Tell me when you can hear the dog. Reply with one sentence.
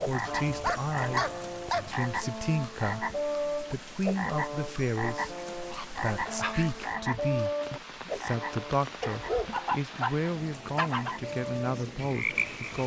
You can hear the dog from 0.1 to 1.9 s, from 5.3 to 7.0 s and from 9.0 to 11.2 s.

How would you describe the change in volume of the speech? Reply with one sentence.
The loudness of the speech stays about the same.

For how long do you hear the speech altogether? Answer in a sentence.
The speech can be heard for 13 seconds in total.